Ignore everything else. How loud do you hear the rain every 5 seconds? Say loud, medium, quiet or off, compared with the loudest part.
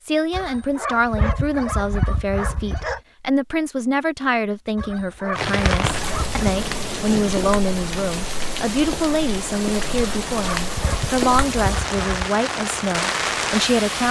off, loud, loud.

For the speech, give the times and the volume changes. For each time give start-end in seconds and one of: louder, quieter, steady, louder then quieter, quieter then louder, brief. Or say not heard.
0.0-14.0 steady.